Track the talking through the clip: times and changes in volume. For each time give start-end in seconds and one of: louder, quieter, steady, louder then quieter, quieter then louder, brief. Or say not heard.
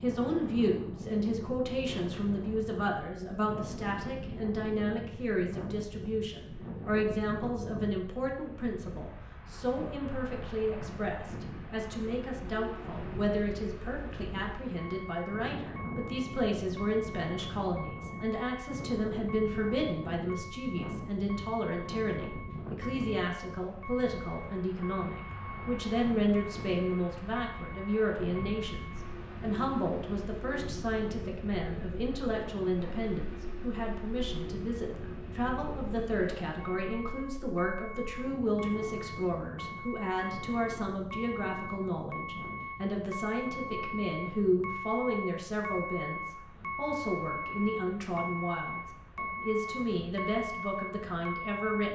0.0-51.9 steady.